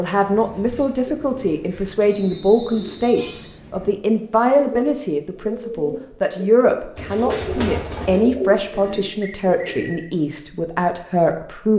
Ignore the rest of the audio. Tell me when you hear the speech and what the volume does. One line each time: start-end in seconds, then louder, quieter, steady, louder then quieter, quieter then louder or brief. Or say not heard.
0.0-11.7 steady.